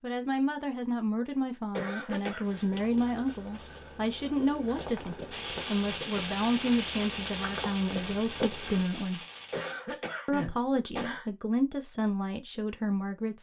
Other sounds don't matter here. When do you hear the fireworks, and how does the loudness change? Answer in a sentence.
The fireworks can be heard from 5.3 to 9.8 s, getting quieter.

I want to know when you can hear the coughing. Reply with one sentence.
The coughing can be heard from 1.8 to 2.5 s and from 9.5 to 11.2 s.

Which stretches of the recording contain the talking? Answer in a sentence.
You can hear the talking from 0.0 to 9.2 s and from 10.2 to 13.3 s.